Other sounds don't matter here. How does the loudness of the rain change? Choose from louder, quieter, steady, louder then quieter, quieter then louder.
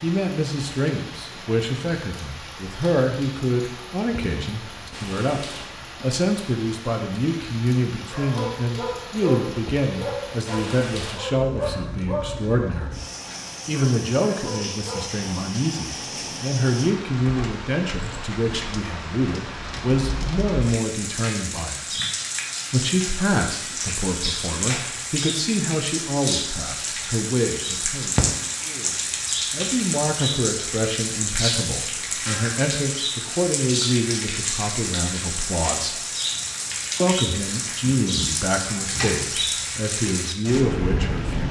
louder.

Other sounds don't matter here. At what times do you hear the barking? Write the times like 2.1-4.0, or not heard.
8.0-15.1.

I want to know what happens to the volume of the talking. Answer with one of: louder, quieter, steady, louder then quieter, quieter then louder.
steady.